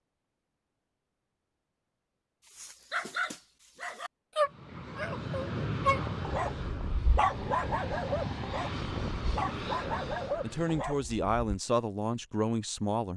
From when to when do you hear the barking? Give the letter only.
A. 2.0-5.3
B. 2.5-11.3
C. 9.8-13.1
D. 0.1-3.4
B.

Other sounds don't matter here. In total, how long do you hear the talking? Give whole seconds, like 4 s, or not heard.
3 s.